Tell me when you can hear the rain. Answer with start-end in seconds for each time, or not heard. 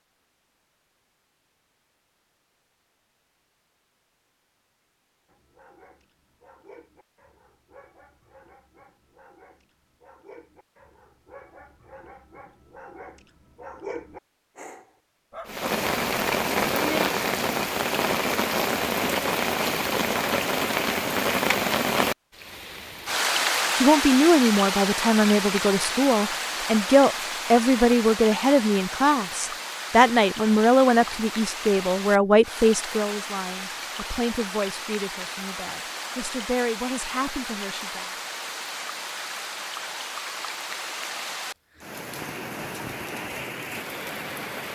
15.4-44.7.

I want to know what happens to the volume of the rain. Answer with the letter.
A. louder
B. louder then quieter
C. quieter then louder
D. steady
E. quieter
E.